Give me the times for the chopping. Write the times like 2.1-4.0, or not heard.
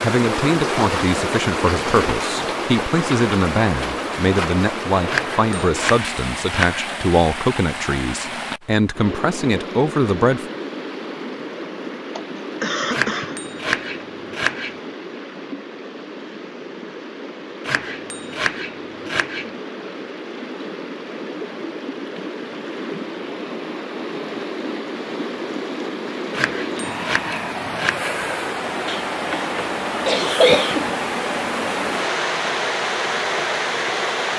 5.0-6.9, 12.9-14.8, 17.6-19.5, 26.3-28.1.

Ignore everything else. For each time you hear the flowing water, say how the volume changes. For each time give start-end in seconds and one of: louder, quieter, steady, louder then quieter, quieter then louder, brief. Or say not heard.
0.0-34.3 quieter then louder.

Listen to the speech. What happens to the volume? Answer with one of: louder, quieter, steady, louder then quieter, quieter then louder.
steady.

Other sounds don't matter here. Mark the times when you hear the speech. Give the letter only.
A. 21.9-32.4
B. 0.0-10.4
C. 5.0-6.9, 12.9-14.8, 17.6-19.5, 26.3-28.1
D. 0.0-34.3
B.